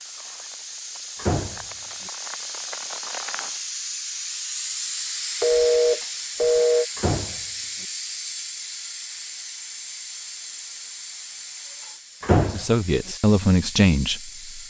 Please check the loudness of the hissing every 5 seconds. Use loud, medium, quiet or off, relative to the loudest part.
loud, loud, medium.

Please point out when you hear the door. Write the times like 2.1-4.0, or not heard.
1.1-1.6, 7.0-7.8, 12.2-12.7.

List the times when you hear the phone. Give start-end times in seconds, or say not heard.
5.4-6.8.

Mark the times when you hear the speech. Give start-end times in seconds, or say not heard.
12.5-14.6.